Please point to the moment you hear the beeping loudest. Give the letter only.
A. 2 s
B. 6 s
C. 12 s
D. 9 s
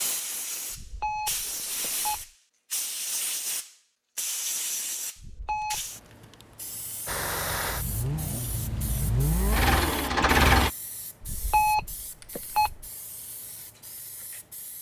C.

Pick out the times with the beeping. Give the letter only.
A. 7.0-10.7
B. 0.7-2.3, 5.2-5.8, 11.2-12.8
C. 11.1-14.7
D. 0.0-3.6
B.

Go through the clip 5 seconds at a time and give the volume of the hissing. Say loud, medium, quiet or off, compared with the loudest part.
loud, medium, quiet.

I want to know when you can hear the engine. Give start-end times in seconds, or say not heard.
7.0-10.7.